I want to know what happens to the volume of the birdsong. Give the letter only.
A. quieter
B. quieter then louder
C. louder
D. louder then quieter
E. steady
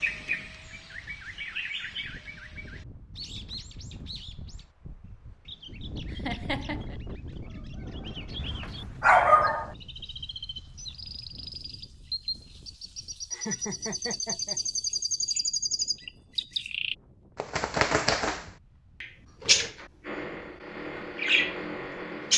B.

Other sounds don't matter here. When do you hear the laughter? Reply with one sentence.
The laughter can be heard from 6.1 to 7.0 s and from 13.3 to 14.6 s.